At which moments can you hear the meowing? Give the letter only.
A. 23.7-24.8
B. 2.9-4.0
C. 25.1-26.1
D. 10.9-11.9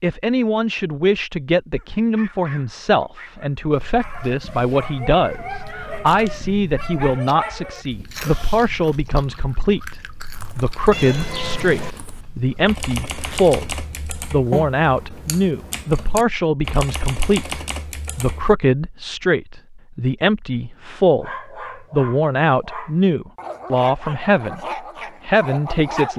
D.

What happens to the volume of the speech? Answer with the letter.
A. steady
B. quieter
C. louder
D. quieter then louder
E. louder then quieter
A.